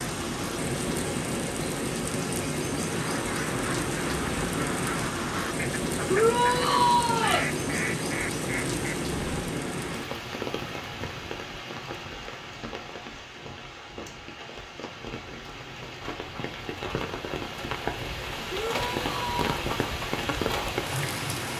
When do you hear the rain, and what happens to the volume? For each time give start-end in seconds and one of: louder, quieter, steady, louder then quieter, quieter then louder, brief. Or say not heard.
0.0-21.5 quieter then louder.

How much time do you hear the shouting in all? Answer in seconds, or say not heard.
2 s.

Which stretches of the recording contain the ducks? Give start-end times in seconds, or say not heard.
2.8-9.5.